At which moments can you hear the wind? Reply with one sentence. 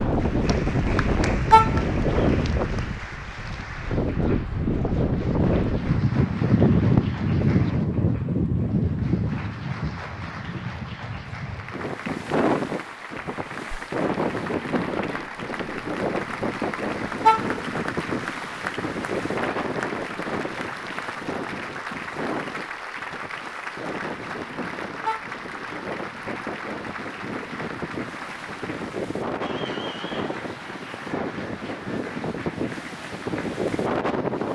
You can hear the wind from 0.0 to 34.5 s.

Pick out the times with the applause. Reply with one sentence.
You can hear the applause from 0.0 to 34.5 s.